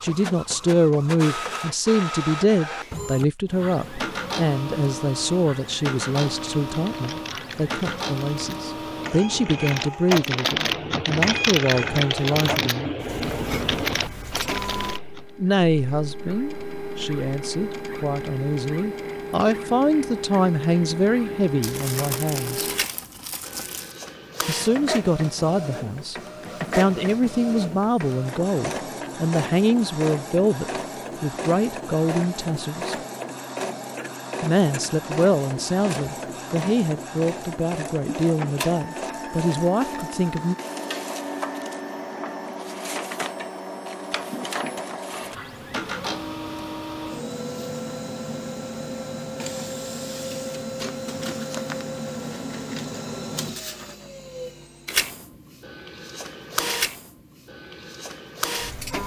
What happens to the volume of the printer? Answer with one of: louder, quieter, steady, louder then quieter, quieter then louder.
steady.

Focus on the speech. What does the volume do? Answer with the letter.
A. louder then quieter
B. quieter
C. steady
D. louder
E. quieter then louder
C.